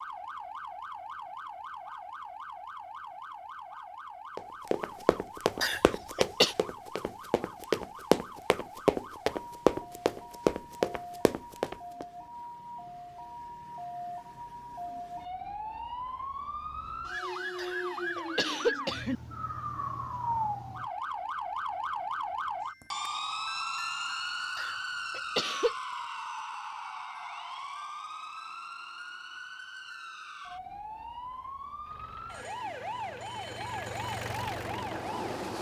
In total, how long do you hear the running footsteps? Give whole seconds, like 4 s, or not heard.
8 s.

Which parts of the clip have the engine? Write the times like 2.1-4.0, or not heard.
31.8-35.5.